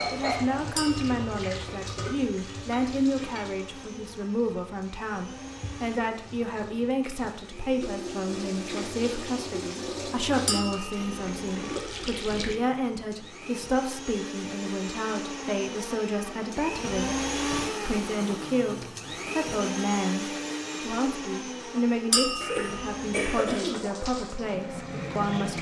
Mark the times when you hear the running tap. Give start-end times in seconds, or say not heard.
0.0-12.6, 23.5-25.5.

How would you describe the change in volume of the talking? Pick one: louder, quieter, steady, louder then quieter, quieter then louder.
steady.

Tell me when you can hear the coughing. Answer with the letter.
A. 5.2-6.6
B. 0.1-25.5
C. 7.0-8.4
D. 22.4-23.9
D.